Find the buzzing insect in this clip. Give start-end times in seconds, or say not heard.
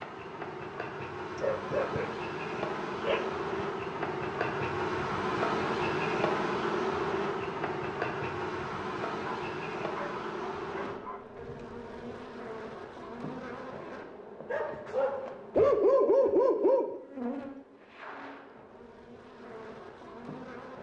0.0-20.7.